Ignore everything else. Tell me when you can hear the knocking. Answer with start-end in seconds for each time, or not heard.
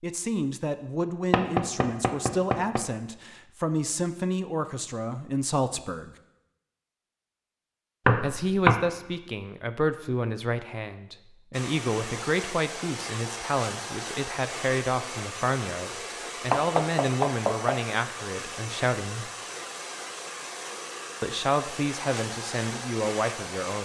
1.3-2.8, 8.1-8.8, 16.5-17.8.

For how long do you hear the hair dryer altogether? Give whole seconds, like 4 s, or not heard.
12 s.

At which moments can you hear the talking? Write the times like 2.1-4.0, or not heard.
0.0-6.2, 8.2-19.3, 21.2-23.7.